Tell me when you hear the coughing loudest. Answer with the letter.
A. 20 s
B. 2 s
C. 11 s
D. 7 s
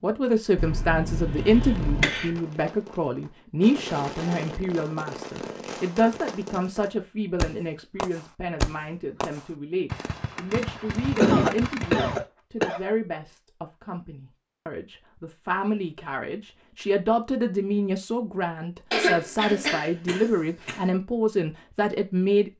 C.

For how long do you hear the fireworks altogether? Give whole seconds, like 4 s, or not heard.
11 s.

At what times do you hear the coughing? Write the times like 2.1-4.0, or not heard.
0.6-2.4, 10.9-12.8, 18.9-20.8.